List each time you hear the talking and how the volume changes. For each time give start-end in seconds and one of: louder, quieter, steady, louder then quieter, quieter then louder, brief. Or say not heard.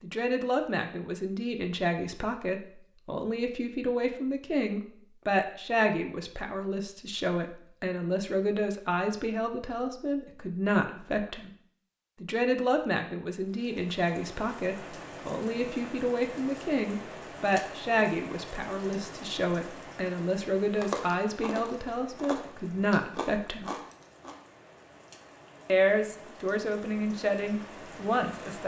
0.0-11.5 steady
12.2-23.7 steady
25.6-28.6 brief.